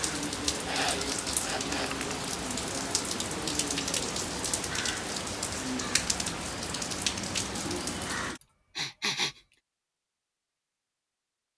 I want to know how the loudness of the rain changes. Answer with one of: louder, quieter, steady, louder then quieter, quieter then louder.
steady.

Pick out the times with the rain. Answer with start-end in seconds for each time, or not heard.
0.0-8.4.